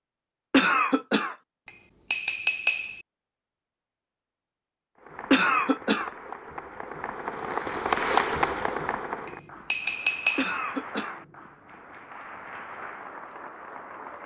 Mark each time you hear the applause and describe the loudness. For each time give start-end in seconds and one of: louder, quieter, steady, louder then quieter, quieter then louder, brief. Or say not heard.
5.0-14.2 louder then quieter.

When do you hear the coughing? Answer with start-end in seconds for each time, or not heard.
0.5-1.4, 5.3-6.1, 10.3-11.2.